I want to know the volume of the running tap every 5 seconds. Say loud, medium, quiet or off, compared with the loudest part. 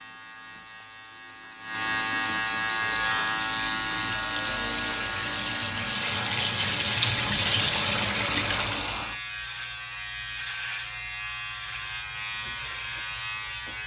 medium, loud, off.